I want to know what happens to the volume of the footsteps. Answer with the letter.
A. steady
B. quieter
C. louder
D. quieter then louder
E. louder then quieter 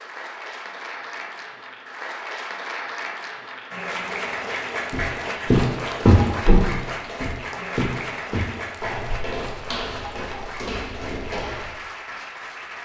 B.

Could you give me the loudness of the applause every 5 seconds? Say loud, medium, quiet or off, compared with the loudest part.
loud, loud, medium.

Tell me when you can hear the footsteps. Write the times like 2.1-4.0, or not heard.
4.9-11.8.